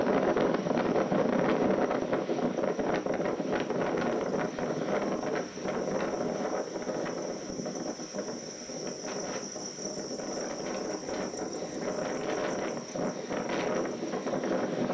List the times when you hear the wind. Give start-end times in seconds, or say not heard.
0.0-14.8.